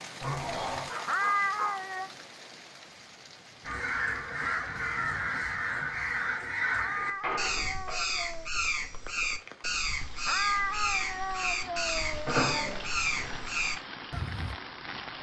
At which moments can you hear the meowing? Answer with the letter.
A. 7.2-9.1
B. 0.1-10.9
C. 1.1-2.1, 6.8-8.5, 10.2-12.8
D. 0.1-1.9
C.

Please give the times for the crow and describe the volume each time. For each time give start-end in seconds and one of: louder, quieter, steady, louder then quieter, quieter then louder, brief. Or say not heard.
3.6-14.6 steady.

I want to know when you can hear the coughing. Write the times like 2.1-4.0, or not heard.
not heard.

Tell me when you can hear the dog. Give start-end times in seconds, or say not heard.
0.1-1.9.